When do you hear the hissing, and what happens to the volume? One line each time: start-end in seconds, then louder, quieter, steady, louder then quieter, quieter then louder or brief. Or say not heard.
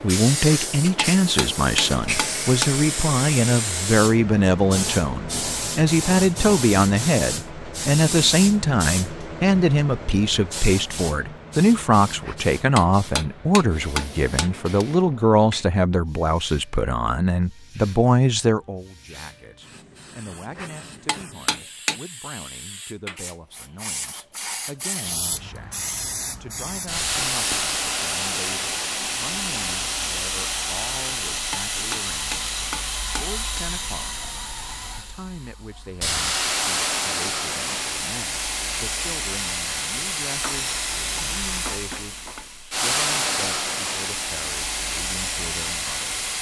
0.0-46.3 quieter then louder.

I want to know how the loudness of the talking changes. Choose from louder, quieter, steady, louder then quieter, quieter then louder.
quieter.